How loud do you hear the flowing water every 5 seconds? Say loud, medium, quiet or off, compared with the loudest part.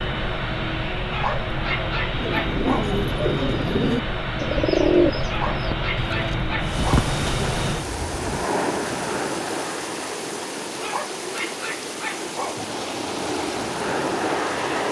off, loud, loud.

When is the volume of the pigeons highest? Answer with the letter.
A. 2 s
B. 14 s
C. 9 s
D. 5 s
D.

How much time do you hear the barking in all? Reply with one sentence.
The barking can be heard for 6 seconds in total.